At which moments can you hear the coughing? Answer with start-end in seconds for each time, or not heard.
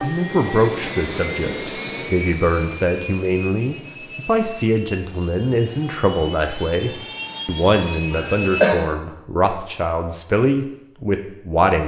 8.1-8.8.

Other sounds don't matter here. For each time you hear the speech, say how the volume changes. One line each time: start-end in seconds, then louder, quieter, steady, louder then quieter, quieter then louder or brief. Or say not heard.
0.0-11.8 steady.